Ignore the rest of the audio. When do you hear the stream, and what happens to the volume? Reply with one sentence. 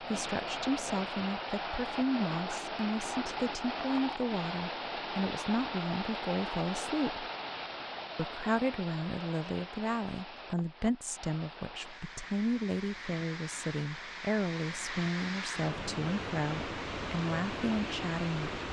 The stream can be heard from 0.0 to 18.6 s, getting quieter then louder.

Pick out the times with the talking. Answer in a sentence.
The talking can be heard from 0.0 to 7.2 s and from 8.2 to 18.6 s.